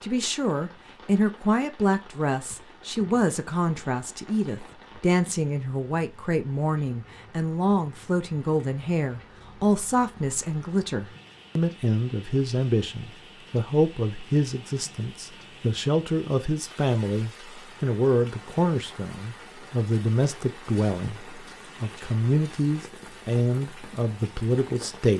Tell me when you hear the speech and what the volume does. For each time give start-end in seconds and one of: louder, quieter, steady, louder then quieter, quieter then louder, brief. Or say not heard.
0.0-25.1 steady.